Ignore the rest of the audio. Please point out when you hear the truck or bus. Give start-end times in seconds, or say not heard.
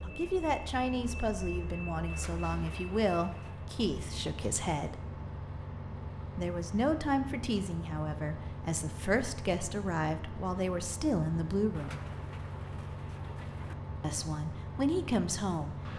0.0-15.9.